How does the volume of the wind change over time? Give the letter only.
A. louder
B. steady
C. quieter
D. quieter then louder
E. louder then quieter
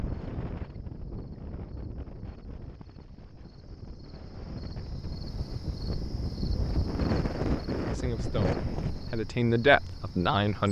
D.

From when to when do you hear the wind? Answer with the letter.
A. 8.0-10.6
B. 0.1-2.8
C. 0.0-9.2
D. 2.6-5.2
C.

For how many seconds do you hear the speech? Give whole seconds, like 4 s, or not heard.
3 s.